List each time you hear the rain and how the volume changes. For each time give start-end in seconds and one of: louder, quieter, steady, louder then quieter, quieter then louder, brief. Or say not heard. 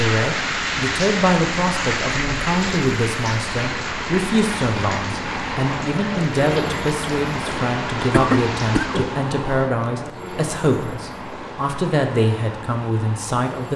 0.0-9.3 quieter.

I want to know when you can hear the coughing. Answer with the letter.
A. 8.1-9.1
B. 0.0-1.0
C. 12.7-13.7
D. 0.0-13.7
A.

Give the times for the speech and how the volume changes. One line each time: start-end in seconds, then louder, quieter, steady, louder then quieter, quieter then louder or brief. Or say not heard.
0.0-13.7 steady.